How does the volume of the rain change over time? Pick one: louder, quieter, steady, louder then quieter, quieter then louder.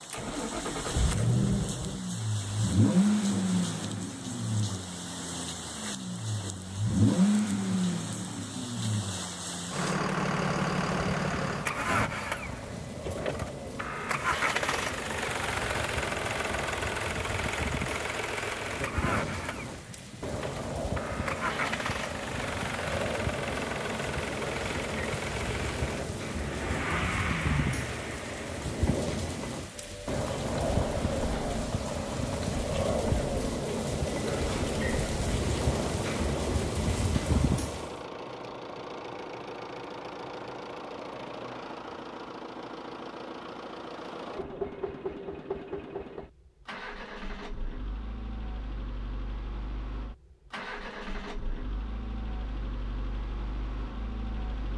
louder.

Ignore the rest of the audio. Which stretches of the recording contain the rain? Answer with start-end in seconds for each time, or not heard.
0.0-38.0.